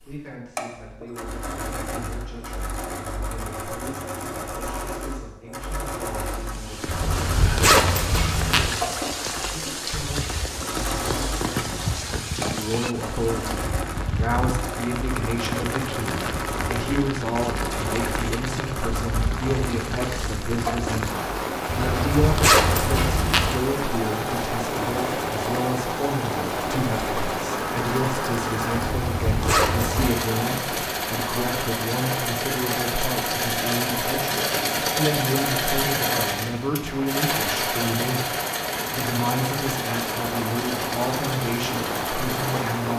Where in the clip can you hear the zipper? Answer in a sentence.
You can hear the zipper from 6.8 to 8.7 s, from 21.6 to 23.6 s and from 28.9 to 30.1 s.